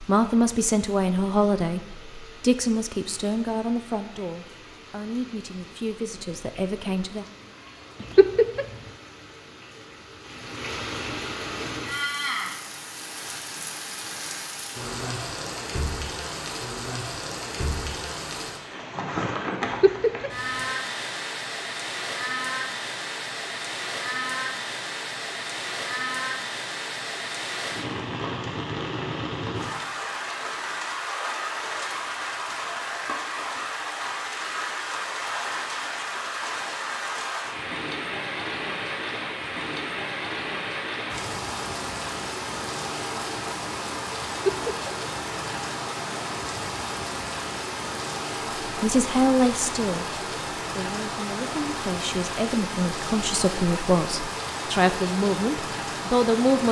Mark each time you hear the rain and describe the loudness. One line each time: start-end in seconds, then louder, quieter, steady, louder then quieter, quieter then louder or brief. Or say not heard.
0.0-56.6 louder.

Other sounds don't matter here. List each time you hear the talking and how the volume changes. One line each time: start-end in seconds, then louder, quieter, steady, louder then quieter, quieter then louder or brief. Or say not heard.
0.0-7.2 quieter
48.6-56.6 quieter then louder.